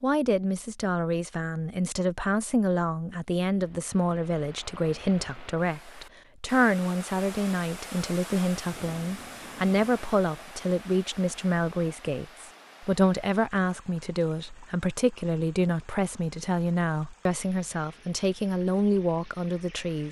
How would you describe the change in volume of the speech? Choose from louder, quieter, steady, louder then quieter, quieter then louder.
steady.